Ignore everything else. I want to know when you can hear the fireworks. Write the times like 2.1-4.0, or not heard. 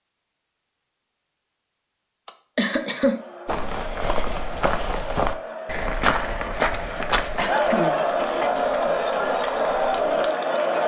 not heard.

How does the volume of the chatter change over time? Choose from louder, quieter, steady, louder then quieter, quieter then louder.
louder.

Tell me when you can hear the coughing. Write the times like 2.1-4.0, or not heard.
2.2-3.2, 7.3-8.5.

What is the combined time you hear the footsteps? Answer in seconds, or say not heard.
7 s.